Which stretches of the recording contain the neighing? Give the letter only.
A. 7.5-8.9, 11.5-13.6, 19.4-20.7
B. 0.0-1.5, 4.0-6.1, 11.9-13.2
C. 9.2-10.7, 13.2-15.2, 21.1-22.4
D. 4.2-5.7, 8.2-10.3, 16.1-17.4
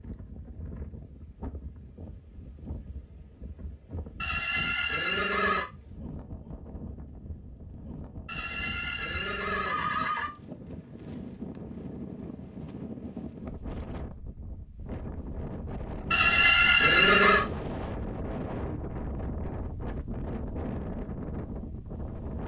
D.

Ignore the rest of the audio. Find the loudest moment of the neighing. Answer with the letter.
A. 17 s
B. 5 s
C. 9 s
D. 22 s
A.